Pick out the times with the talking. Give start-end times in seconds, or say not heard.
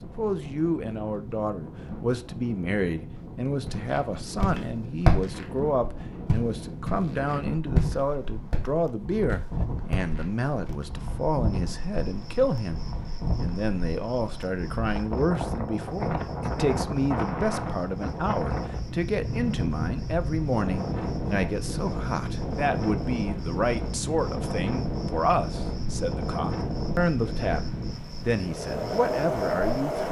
0.0-30.0.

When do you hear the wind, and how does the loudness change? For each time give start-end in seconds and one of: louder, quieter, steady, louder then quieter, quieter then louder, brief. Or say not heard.
0.0-30.0 louder.